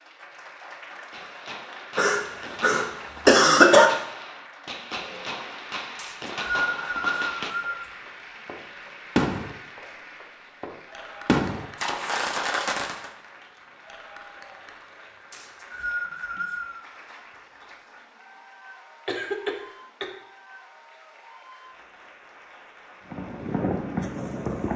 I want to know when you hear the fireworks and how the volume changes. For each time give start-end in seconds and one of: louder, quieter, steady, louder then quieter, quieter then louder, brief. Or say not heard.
0.9-13.1 louder
23.1-24.7 brief.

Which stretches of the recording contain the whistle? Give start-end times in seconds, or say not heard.
6.0-7.8, 15.3-16.8.